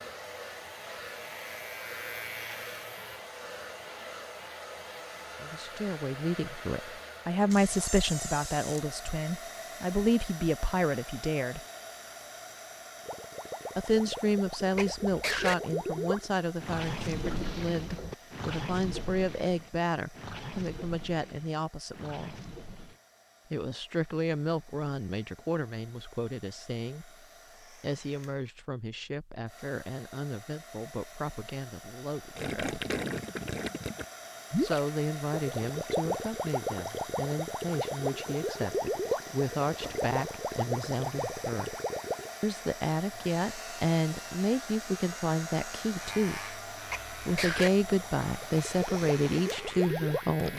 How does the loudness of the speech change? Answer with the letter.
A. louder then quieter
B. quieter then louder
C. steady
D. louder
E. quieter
B.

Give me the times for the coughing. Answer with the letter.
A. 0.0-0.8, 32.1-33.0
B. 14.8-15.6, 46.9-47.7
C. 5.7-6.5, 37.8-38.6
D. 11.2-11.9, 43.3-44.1
B.